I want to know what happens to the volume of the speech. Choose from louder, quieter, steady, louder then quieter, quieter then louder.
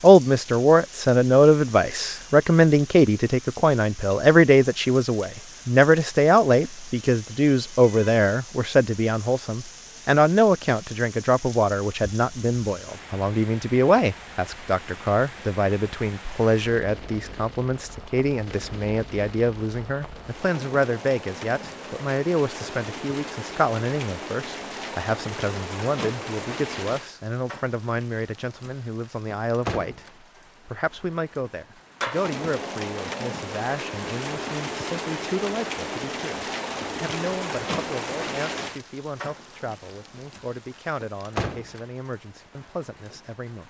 quieter.